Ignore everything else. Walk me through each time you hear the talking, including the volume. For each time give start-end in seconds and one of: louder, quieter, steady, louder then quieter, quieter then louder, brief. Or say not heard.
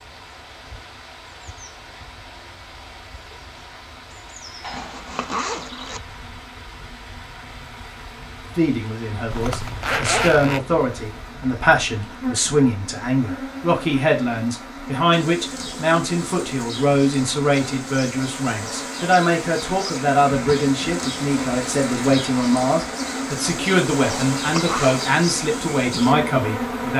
8.6-26.9 steady.